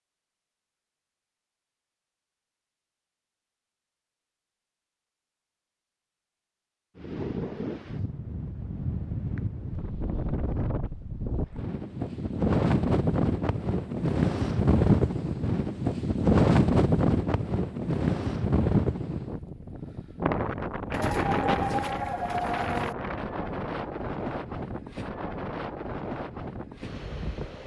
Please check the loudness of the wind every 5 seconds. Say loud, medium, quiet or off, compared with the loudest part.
off, medium, loud, loud, medium, medium.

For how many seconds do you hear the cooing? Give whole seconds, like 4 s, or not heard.
2 s.